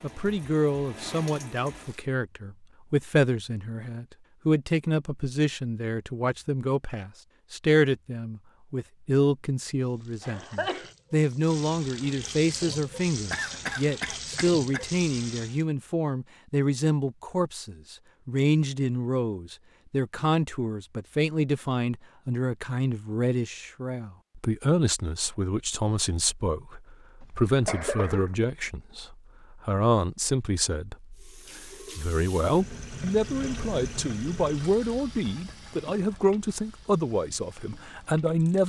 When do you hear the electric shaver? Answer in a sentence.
The electric shaver can't be heard in this clip.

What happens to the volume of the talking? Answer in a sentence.
The volume of the talking stays about the same.